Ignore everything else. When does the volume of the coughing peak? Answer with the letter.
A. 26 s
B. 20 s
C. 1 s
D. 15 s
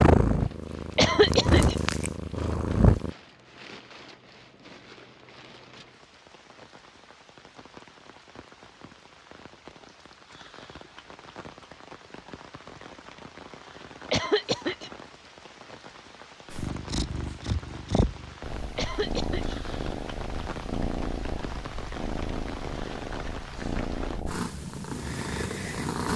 C.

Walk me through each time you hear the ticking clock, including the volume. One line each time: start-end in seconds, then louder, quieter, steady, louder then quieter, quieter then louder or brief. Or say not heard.
not heard.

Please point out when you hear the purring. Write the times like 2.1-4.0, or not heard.
0.0-3.1, 16.5-26.1.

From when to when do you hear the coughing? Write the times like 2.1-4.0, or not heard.
0.9-1.8, 14.1-14.9, 18.8-19.6.